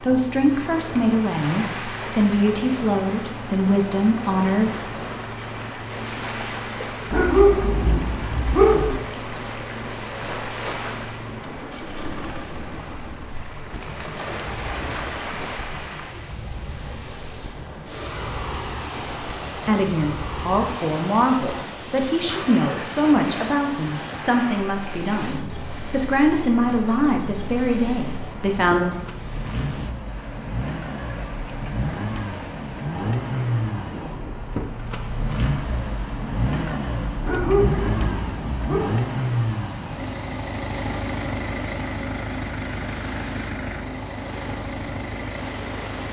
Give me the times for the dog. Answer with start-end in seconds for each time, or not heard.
7.1-8.9, 37.2-38.9.